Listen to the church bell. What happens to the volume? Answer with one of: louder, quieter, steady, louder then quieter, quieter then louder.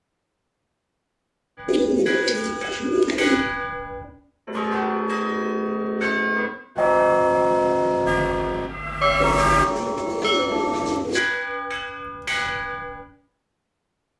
louder then quieter.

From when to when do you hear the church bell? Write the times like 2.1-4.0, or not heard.
1.6-13.1.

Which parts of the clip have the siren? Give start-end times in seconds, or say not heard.
8.1-9.7.